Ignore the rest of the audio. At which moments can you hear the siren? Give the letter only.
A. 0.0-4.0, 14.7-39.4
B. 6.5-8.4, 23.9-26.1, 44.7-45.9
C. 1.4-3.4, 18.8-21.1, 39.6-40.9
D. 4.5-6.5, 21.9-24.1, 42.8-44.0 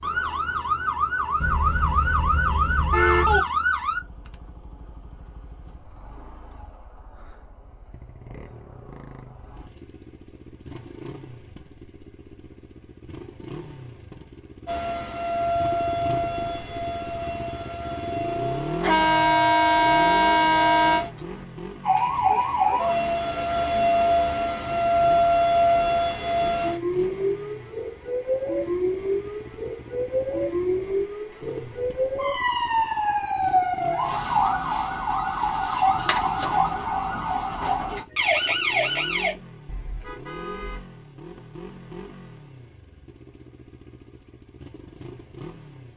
A.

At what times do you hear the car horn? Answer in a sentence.
You can hear the car horn from 1.4 to 3.4 s, from 18.8 to 21.1 s and from 39.6 to 40.9 s.